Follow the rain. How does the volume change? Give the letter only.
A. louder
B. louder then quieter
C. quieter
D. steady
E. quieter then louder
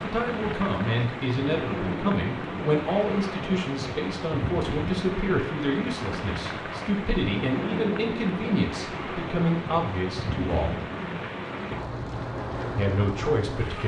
D.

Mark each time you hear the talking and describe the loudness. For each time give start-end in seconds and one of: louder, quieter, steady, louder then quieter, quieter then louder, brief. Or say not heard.
0.0-10.8 steady
12.8-13.8 brief.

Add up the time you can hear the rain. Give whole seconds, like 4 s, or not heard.
14 s.